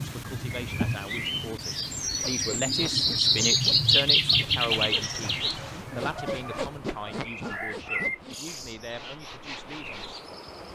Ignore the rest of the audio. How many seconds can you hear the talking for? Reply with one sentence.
The talking can be heard for 10 seconds in total.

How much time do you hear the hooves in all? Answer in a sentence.
You can't hear the hooves here.